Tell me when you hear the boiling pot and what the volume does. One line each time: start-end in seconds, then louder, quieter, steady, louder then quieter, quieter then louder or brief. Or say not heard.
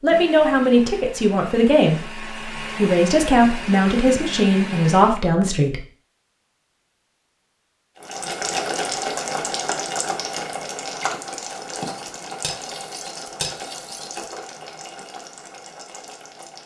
8.0-16.6 quieter.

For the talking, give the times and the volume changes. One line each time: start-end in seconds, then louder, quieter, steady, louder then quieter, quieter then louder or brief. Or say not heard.
0.0-5.8 steady.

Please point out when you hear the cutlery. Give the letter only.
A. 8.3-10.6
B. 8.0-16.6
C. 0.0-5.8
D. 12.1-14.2
D.